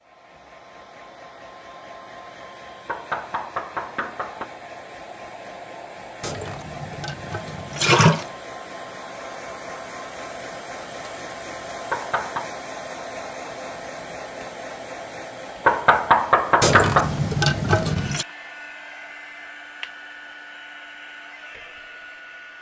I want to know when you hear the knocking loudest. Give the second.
16 s.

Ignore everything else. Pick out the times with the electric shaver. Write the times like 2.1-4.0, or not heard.
not heard.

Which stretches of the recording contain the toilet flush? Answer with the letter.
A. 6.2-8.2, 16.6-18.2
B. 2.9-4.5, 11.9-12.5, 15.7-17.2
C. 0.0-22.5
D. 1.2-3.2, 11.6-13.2
A.